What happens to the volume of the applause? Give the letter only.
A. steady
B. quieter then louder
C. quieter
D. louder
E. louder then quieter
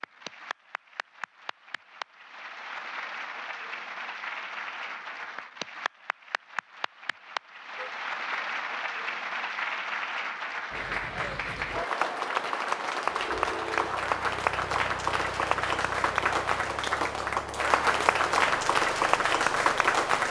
D.